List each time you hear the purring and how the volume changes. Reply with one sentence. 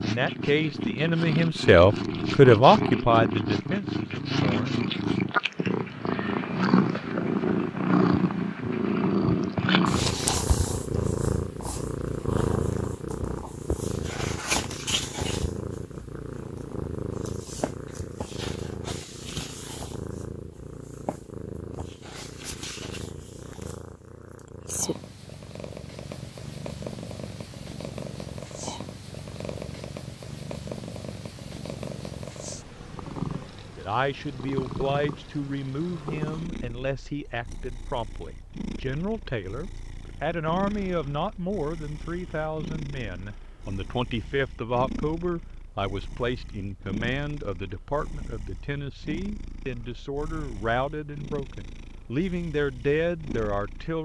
The purring can be heard from 0.0 to 54.0 s, getting quieter.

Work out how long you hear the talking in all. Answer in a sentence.
You can hear the talking for 25 seconds altogether.